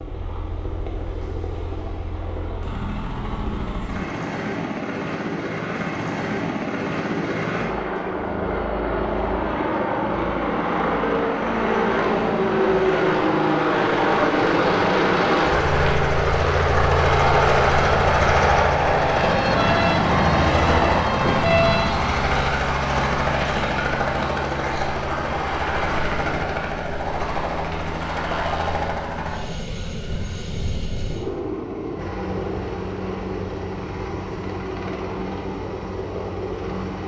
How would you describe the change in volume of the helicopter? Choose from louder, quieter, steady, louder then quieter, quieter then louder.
louder then quieter.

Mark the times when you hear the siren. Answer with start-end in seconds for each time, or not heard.
19.1-22.2.